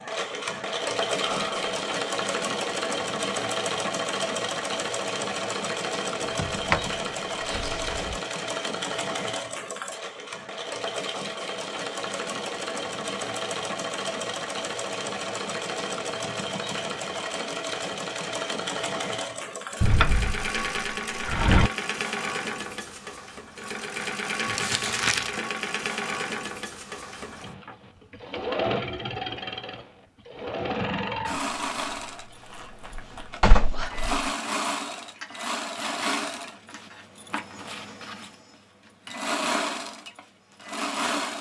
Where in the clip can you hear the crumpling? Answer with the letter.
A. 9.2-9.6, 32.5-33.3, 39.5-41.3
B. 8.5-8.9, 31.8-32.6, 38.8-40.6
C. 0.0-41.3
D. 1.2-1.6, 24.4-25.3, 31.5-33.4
D.